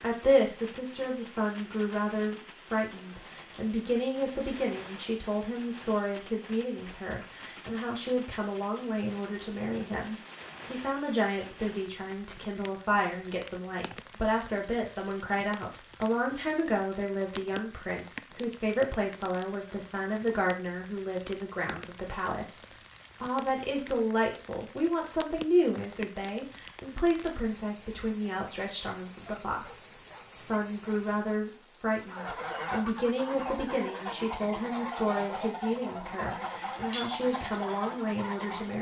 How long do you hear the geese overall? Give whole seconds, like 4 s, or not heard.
7 s.